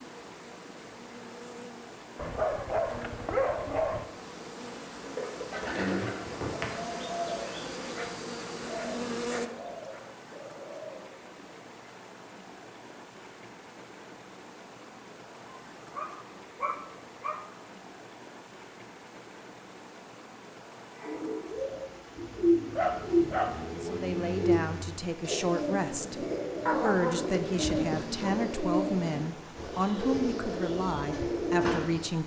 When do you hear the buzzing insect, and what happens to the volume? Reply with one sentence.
The buzzing insect can be heard from 0.0 to 9.5 s, getting louder.